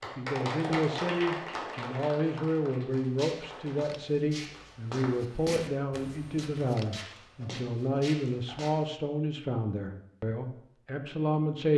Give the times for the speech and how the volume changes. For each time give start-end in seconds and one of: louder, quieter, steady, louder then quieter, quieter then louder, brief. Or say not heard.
0.0-11.7 steady.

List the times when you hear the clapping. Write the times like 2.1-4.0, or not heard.
0.0-3.9.